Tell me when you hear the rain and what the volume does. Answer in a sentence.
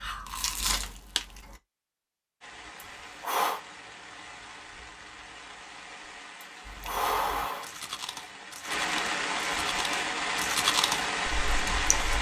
The rain can be heard from 2.4 to 12.1 s, getting louder.